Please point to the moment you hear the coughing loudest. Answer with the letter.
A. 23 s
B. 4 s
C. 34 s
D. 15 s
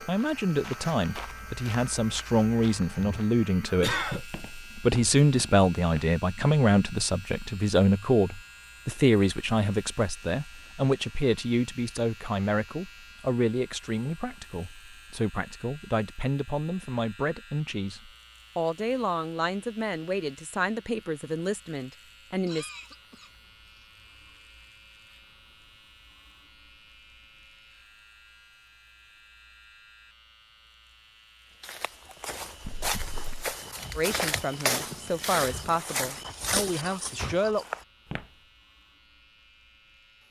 B.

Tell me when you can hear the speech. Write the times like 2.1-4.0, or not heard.
0.0-22.7, 34.0-37.6.